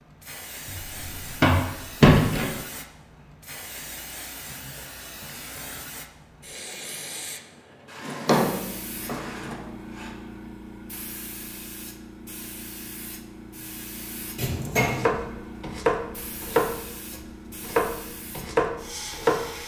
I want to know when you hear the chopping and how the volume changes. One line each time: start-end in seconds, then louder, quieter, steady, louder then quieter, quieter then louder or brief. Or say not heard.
14.9-19.6 quieter then louder.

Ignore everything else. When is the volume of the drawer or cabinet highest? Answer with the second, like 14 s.
2 s.